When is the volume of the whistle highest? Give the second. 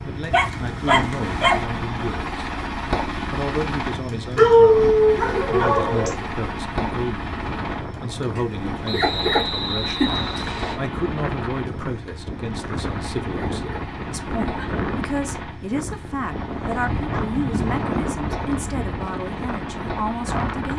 9 s.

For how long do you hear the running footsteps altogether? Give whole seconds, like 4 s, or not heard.
not heard.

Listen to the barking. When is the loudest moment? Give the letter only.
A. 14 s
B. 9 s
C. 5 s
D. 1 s
C.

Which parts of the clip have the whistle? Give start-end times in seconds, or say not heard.
8.8-10.8.